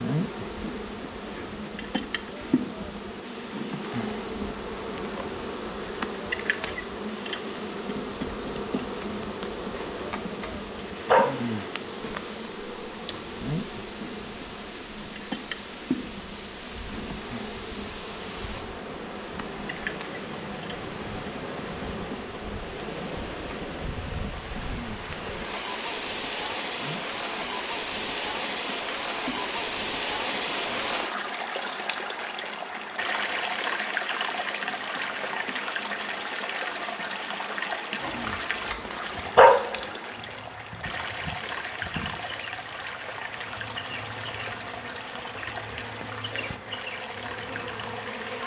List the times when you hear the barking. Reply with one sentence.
The barking can be heard from 9.8 to 11.3 s and from 38.0 to 39.8 s.